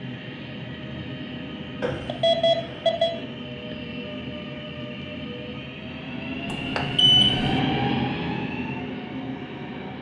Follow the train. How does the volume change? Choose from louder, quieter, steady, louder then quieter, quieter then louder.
louder.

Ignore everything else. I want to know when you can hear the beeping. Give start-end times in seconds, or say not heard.
1.8-3.1, 6.5-7.5.